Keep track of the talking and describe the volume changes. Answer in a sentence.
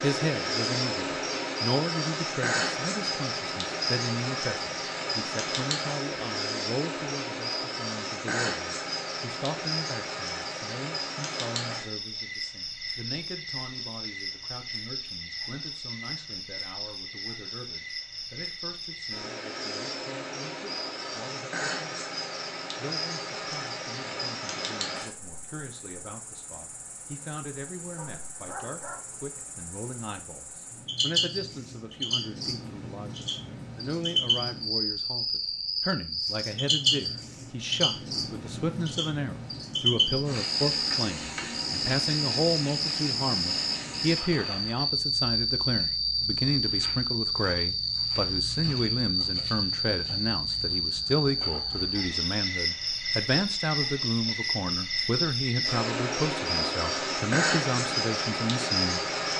The loudness of the talking goes down, then up.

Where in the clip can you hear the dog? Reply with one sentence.
You can hear the dog from 27.9 to 29.1 s.